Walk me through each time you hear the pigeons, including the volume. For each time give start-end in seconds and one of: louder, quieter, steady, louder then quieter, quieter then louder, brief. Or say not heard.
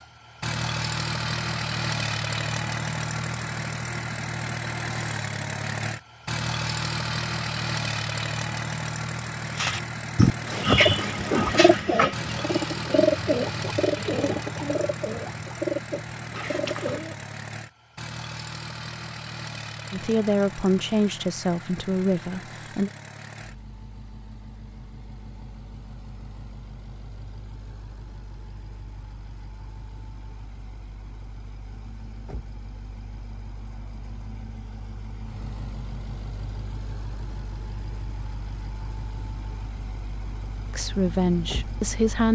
9.6-17.2 quieter.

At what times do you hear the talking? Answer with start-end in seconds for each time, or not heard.
19.9-22.9, 40.7-42.3.